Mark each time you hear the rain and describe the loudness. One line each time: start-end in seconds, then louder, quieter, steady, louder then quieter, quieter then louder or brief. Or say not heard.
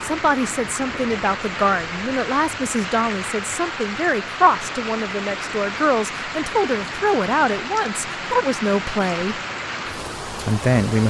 0.0-11.0 steady.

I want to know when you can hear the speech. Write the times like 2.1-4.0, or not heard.
0.0-9.4, 10.2-11.0.